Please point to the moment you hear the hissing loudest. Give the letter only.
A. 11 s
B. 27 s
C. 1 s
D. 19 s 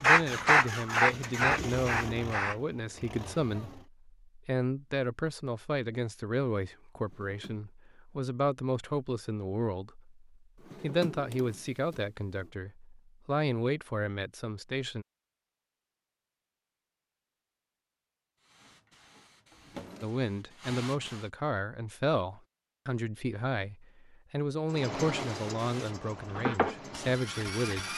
C.